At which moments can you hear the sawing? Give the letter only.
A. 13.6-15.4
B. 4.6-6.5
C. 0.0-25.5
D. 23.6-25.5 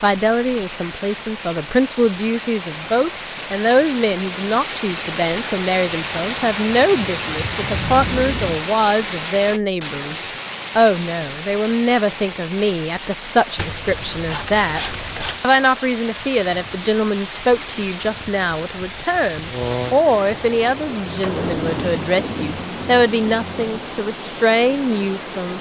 A.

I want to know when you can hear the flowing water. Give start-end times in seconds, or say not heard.
0.0-25.5.